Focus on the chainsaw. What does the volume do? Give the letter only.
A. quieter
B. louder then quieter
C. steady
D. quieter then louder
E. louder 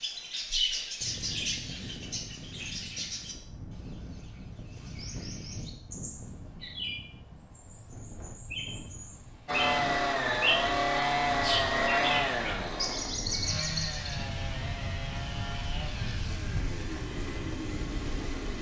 A.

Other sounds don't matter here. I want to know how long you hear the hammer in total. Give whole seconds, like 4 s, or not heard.
not heard.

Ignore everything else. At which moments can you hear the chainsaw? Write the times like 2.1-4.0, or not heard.
9.4-18.5.